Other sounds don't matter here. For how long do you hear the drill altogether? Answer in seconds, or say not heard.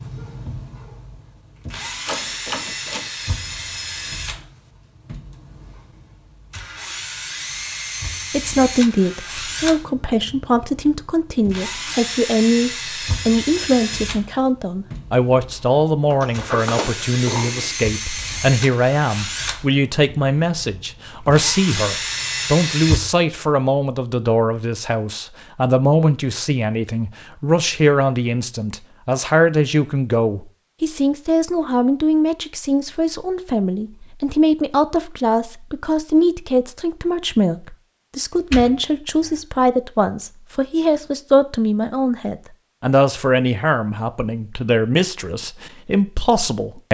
23 s.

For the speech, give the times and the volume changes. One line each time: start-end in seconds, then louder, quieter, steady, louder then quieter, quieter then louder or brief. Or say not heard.
8.3-46.8 steady.